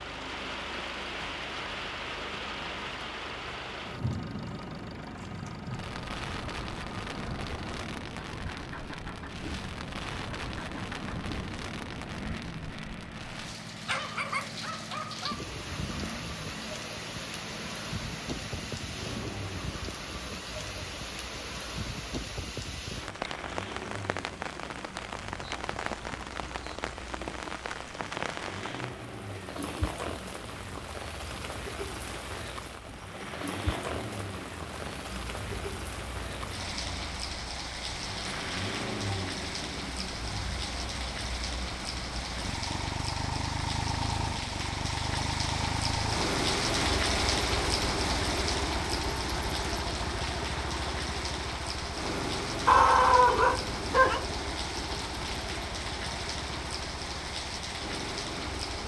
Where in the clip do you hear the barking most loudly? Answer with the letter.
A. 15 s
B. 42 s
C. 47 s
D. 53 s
D.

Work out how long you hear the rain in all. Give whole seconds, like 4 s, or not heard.
59 s.